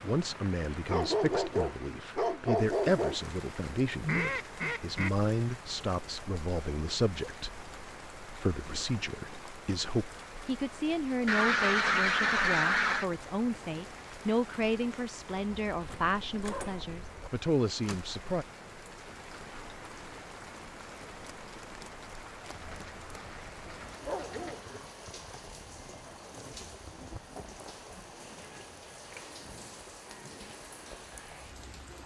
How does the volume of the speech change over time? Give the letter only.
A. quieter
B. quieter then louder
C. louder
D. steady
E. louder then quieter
D.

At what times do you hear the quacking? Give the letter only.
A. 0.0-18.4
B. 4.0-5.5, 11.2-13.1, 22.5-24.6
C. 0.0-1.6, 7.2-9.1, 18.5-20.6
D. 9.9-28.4
B.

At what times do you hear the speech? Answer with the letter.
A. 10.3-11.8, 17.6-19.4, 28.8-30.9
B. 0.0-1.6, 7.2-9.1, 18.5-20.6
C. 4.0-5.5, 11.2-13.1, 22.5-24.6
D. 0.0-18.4
D.